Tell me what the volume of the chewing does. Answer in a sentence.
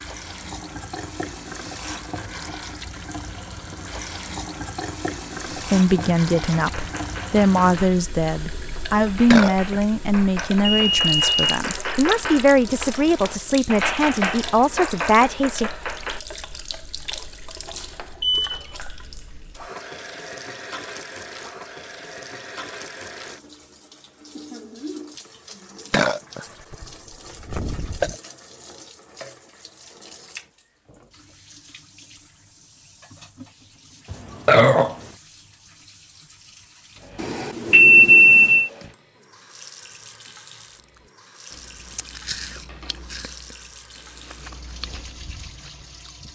The volume of the chewing goes up, then down.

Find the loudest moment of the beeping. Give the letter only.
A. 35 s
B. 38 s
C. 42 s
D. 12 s
B.